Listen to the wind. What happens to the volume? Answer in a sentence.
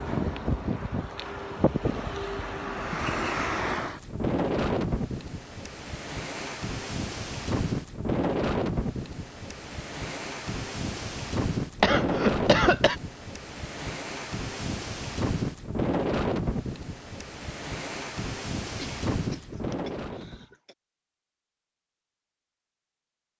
The volume of the wind stays about the same.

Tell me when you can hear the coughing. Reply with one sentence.
The coughing can be heard from 2.9 to 3.5 s, from 11.8 to 12.9 s and from 18.8 to 20.8 s.